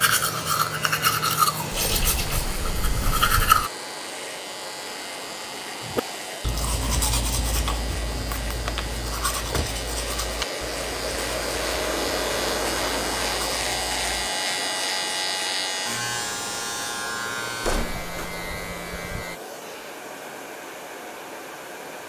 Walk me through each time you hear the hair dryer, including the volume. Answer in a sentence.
You can hear the hair dryer from 0.0 to 22.0 s, getting louder then quieter.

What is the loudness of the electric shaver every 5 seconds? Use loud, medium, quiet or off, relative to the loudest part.
medium, medium, loud, loud, off.